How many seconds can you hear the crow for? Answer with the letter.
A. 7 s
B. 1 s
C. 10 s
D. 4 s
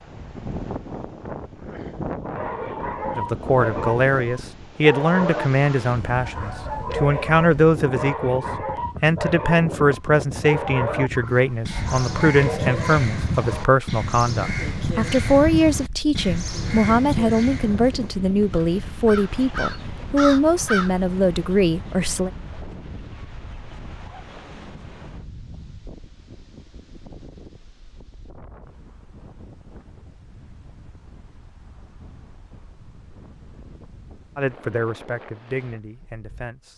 C.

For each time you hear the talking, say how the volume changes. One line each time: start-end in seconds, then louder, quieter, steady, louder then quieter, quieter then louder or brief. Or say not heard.
3.1-22.3 steady
34.4-36.7 brief.